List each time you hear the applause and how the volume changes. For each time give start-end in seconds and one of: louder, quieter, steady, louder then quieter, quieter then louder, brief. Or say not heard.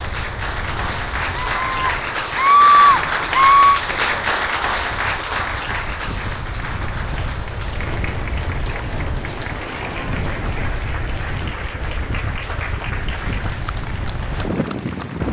0.0-15.2 quieter.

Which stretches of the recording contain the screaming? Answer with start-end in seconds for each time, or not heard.
1.4-3.8.